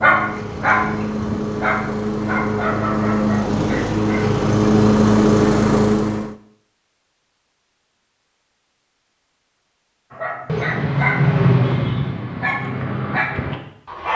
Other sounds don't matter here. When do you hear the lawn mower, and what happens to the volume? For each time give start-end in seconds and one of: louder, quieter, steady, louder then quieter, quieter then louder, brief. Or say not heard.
0.0-6.3 louder.